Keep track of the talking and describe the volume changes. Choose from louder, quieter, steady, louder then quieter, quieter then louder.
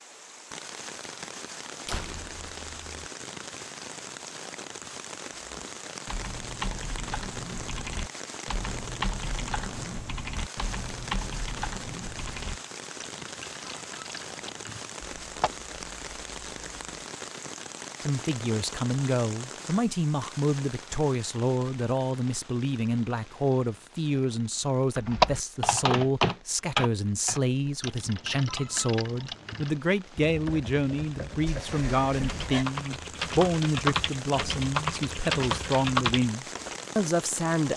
steady.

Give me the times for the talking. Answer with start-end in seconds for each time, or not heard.
18.0-37.7.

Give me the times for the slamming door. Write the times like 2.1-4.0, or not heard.
1.9-3.0, 31.4-32.6.